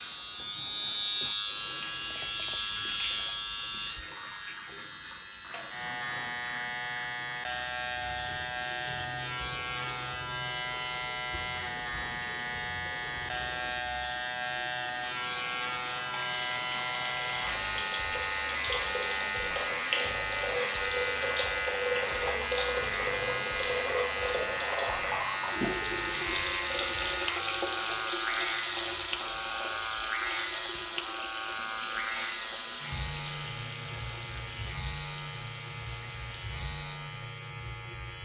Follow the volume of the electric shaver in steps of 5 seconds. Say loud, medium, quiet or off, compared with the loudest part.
loud, loud, loud, loud, loud, loud, loud, medium.